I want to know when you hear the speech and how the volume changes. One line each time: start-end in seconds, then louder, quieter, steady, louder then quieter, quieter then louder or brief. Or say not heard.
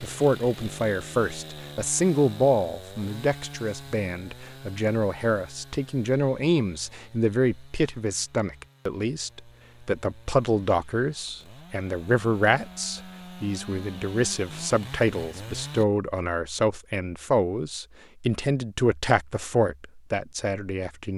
0.0-21.1 steady.